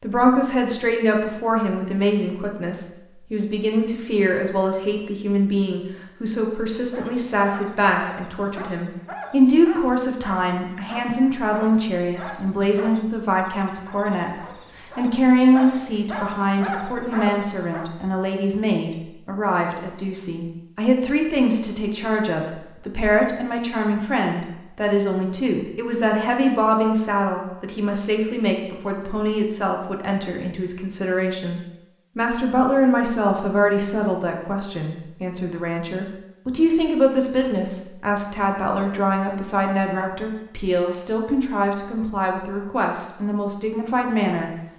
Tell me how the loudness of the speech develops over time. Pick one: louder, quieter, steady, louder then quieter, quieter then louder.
steady.